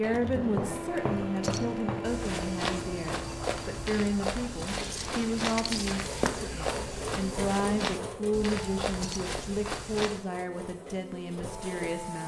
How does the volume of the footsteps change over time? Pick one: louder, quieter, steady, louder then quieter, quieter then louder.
steady.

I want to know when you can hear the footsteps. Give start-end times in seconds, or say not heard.
0.3-10.2.